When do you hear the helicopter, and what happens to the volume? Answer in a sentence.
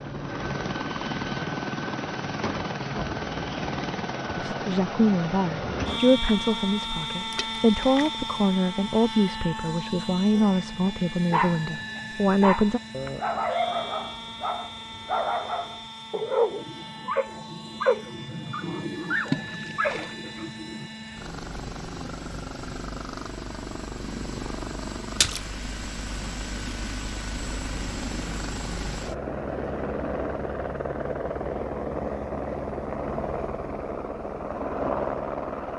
You can hear the helicopter from 0.0 to 35.7 s, getting quieter then louder.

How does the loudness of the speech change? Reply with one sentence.
The volume of the speech stays about the same.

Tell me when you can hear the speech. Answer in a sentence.
The speech can be heard from 4.3 to 12.8 s.